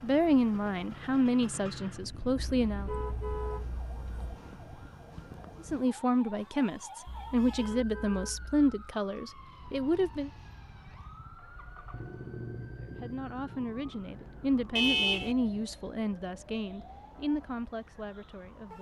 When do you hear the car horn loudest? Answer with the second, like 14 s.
15 s.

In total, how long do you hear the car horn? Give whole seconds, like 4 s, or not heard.
4 s.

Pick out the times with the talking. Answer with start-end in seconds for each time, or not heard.
0.0-2.9, 5.6-10.3, 12.8-18.7.